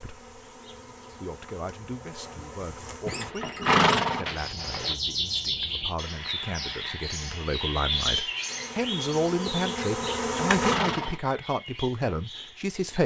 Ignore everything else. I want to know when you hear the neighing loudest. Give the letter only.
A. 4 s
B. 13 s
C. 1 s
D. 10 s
A.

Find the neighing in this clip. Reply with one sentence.
You can hear the neighing from 3.0 to 5.0 s and from 10.0 to 11.2 s.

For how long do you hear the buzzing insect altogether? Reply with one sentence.
The buzzing insect can be heard for 6 seconds in total.